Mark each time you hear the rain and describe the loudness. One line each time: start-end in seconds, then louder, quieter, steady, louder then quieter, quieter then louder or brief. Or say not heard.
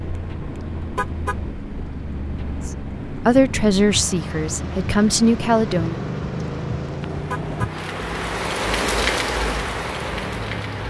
0.0-10.8 louder.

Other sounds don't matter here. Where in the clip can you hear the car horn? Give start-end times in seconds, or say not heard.
0.9-1.4, 7.3-7.7.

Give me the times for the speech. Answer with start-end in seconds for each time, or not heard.
2.6-6.0.